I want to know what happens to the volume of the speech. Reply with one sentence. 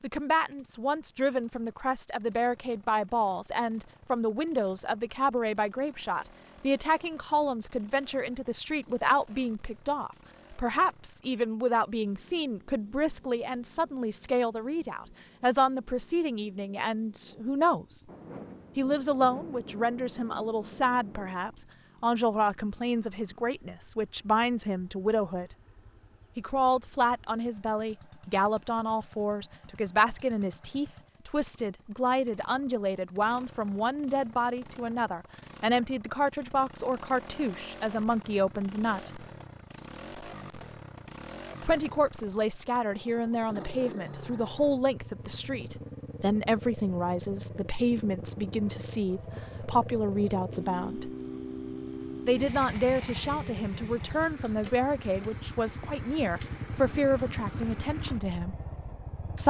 The volume of the speech stays about the same.